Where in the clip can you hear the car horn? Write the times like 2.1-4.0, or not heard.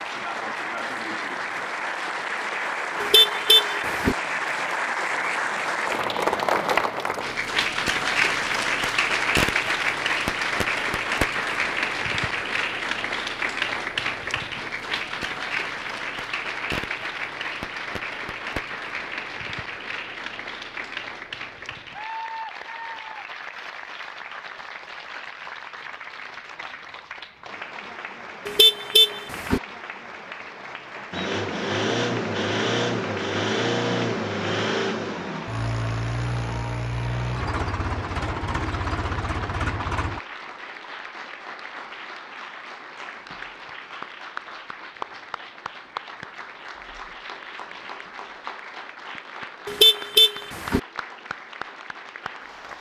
3.0-4.2, 28.4-29.6, 49.6-50.8.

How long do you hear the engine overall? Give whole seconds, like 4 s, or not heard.
9 s.